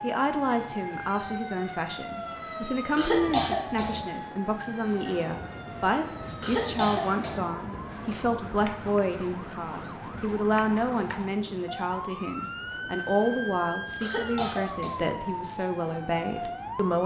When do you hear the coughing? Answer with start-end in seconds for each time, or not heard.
3.0-4.0, 6.4-7.3, 14.0-15.1.